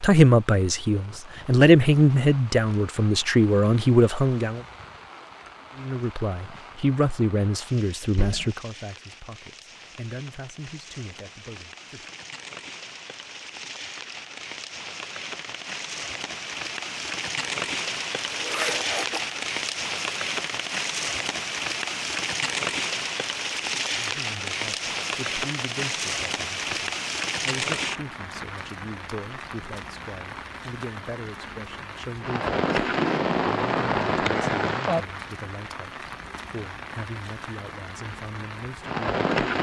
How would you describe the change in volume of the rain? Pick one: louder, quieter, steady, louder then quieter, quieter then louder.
louder.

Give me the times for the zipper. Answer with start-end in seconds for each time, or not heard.
18.4-19.2.